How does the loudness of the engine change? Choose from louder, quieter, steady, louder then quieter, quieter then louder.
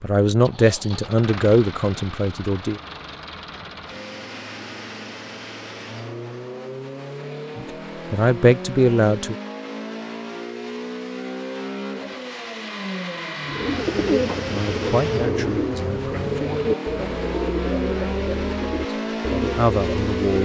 louder.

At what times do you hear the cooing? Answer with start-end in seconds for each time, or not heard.
13.4-20.1.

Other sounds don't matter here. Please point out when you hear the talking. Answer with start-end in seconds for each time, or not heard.
0.0-2.8, 7.5-9.3, 14.5-16.3, 19.3-20.3.